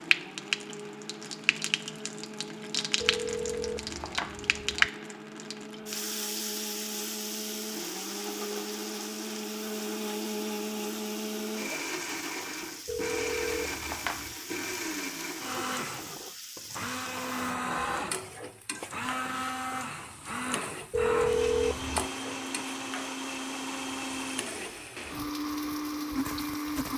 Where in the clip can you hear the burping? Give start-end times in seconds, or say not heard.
not heard.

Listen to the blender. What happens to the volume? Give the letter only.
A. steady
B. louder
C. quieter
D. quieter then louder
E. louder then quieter
B.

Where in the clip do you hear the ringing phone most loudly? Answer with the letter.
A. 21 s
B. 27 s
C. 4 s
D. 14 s
A.